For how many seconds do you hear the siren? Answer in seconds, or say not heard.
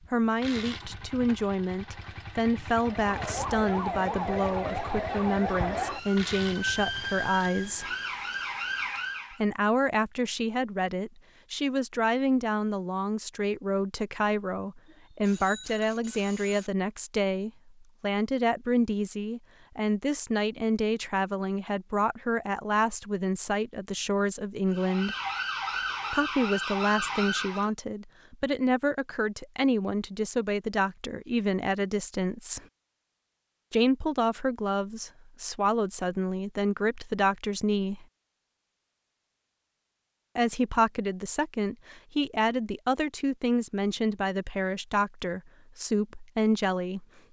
10 s.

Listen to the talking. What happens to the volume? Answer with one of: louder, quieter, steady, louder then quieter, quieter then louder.
steady.